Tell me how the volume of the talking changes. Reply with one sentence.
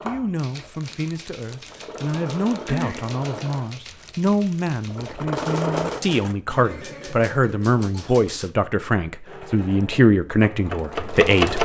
The volume of the talking goes up.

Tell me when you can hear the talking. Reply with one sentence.
The talking can be heard from 0.0 to 11.6 s.